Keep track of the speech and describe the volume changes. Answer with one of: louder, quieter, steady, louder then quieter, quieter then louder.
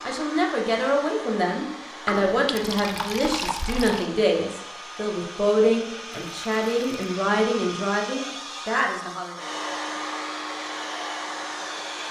steady.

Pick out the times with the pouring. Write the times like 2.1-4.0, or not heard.
2.0-4.1, 6.1-6.9.